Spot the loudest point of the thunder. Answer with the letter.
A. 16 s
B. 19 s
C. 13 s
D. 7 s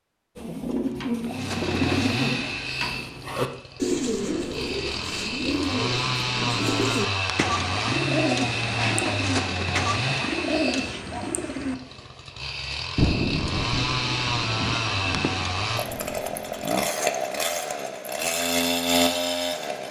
C.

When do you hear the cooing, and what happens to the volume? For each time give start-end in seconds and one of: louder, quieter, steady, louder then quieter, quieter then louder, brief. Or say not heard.
0.3-11.8 steady.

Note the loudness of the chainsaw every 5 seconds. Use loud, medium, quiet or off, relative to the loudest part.
medium, loud, loud, loud.